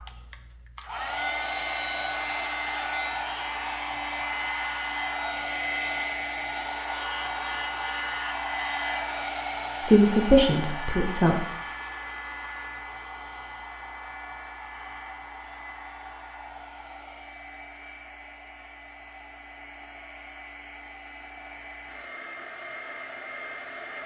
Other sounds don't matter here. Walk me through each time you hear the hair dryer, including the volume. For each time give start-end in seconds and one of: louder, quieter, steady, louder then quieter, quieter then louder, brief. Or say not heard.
0.0-24.0 quieter.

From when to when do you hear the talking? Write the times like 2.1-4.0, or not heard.
9.8-11.4.